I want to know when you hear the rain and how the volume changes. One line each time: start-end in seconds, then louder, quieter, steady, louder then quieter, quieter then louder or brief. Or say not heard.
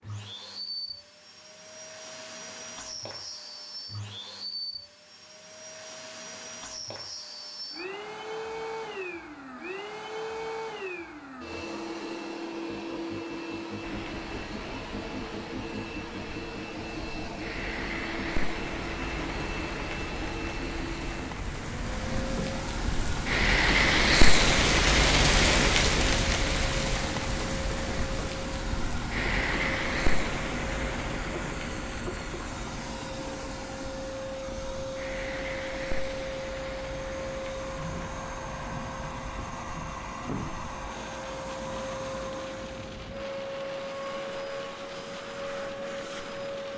13.8-46.7 louder then quieter.